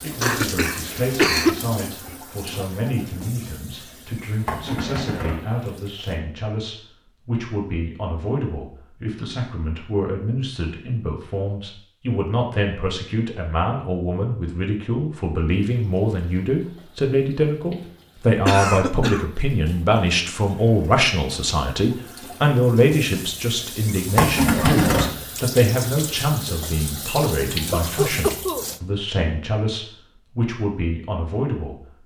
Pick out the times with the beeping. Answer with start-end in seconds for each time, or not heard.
not heard.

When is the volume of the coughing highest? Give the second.
1 s.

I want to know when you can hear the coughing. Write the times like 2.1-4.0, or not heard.
0.2-1.6, 18.4-19.2, 27.7-28.6.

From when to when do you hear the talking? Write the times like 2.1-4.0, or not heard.
0.0-32.0.